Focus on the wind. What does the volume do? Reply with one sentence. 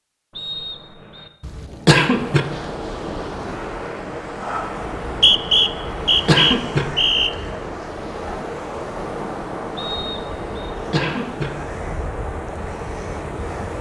The loudness of the wind stays about the same.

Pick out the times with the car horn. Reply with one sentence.
You can't hear the car horn here.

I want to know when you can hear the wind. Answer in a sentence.
The wind can be heard from 2.1 to 13.7 s.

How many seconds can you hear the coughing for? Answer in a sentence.
You can hear the coughing for 3 seconds altogether.